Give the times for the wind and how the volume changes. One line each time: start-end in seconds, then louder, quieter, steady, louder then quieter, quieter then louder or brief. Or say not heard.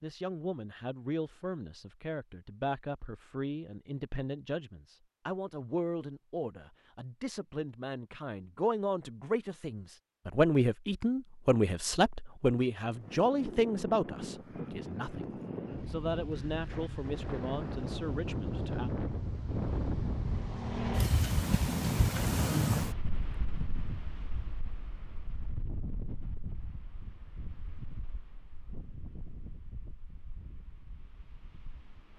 12.8-32.1 louder then quieter.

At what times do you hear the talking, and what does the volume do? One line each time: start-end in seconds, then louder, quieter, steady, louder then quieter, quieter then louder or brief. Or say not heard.
0.0-18.9 louder then quieter.